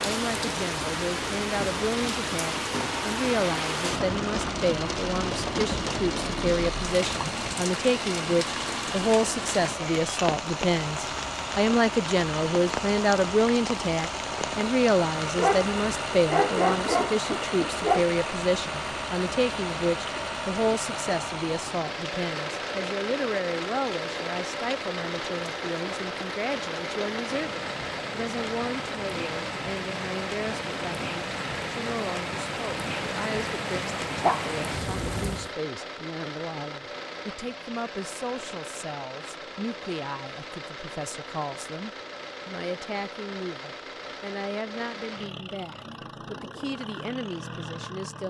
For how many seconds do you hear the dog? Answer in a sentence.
The dog can be heard for 4 seconds in total.